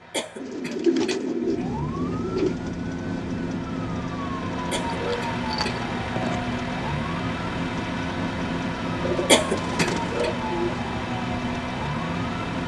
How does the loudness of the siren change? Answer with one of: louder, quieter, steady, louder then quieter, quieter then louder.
steady.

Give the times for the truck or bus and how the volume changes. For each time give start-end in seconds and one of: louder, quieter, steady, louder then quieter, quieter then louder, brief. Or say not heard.
0.0-12.6 louder.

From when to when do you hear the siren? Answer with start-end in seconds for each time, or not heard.
1.4-12.6.